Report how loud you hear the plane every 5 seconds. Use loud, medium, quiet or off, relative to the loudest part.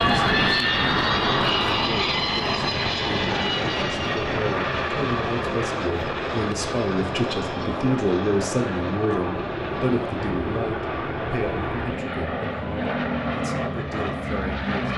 loud, medium, medium.